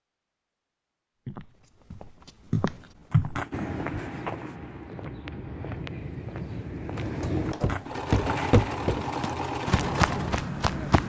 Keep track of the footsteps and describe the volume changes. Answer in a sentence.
The volume of the footsteps goes down, then up.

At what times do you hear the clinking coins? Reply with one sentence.
You can hear the clinking coins from 3.1 to 3.8 s and from 7.5 to 8.9 s.